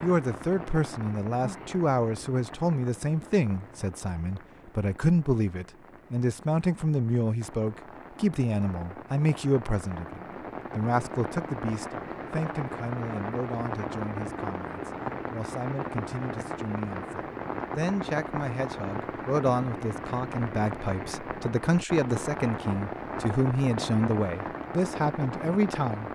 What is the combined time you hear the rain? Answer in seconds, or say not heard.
26 s.